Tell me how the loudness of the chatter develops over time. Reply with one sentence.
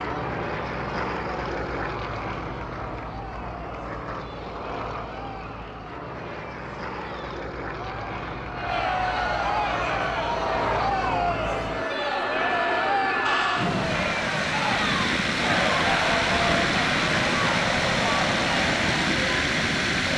The volume of the chatter goes up.